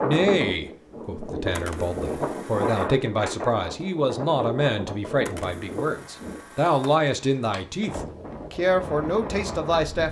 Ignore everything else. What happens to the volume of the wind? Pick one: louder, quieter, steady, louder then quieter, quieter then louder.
quieter then louder.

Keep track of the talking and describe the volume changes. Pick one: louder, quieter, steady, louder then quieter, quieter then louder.
louder.